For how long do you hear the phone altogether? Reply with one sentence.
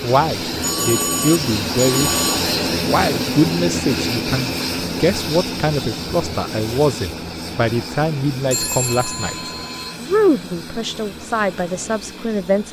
You can hear the phone for 3 seconds altogether.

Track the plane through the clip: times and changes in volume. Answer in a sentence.
The plane can be heard from 0.0 to 12.6 s, getting quieter.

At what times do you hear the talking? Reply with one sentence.
The talking can be heard from 0.0 to 2.1 s and from 2.8 to 12.6 s.